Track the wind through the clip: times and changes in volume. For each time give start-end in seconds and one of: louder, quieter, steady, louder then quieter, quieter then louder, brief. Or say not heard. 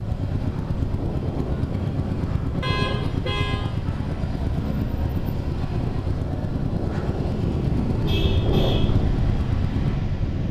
0.0-10.4 louder.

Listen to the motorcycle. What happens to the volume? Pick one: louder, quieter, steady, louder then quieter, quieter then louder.
steady.